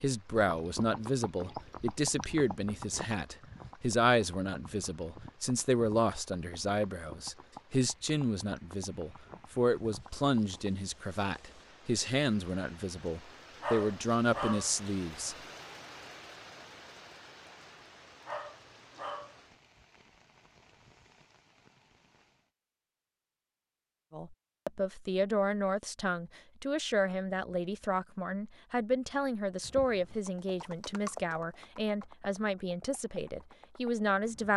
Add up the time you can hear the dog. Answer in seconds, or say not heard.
2 s.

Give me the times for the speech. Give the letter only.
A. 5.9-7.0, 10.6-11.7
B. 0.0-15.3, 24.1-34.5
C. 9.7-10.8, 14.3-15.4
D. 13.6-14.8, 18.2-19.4
B.